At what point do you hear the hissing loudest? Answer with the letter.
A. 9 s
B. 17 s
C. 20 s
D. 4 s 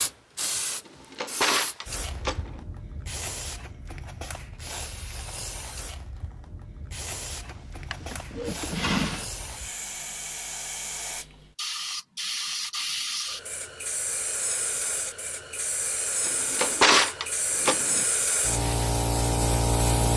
C.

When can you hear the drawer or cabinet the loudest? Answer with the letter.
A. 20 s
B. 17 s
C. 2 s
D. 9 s
B.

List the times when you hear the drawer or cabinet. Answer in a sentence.
You can hear the drawer or cabinet from 0.8 to 2.6 s, from 7.9 to 9.2 s and from 16.2 to 18.1 s.